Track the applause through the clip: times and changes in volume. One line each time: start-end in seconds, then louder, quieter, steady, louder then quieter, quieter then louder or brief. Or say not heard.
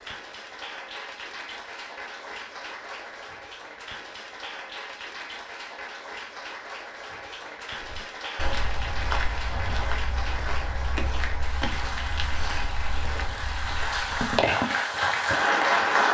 0.0-16.0 louder.